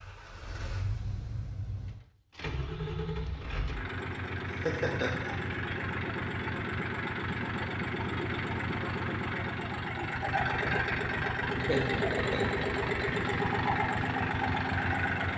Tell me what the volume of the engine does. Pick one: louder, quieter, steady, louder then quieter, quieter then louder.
louder.